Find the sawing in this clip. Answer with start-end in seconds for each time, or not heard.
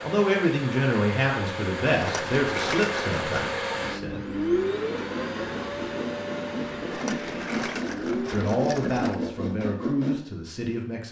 5.2-10.2.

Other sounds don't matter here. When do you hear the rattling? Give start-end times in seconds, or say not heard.
1.9-3.2, 6.9-9.2.